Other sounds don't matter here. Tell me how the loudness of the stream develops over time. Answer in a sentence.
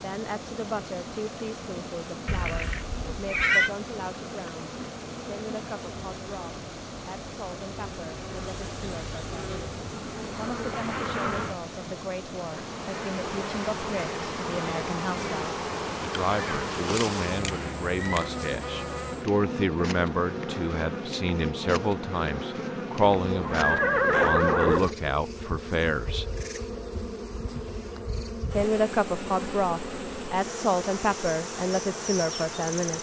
The loudness of the stream stays about the same.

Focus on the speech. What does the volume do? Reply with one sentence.
The loudness of the speech goes up.